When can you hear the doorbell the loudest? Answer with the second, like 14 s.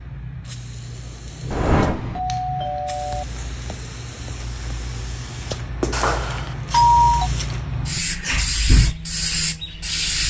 7 s.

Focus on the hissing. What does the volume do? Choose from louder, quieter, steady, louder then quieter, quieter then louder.
louder.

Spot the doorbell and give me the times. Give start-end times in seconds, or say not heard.
1.5-3.2, 5.9-7.3.